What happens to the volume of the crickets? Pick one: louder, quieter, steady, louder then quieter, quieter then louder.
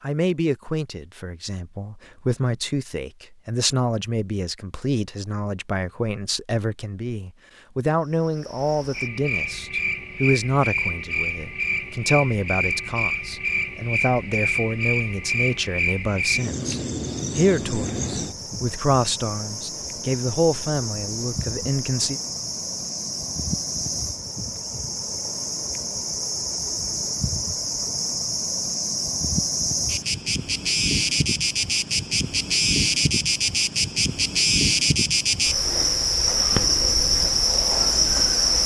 louder.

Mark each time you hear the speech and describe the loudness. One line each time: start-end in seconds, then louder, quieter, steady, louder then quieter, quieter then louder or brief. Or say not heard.
0.0-22.2 steady.